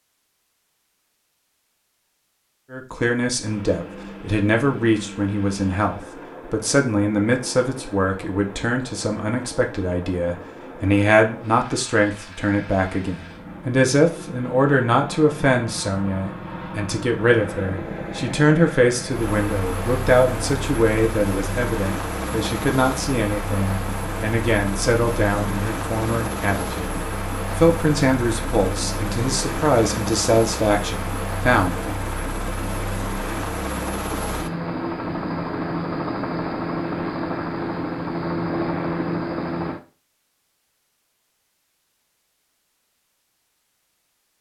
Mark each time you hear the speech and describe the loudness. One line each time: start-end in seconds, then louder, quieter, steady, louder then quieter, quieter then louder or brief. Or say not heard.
2.7-31.9 steady.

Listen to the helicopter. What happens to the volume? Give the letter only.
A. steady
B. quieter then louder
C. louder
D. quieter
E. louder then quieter
C.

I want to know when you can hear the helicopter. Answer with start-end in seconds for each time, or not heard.
3.4-39.8.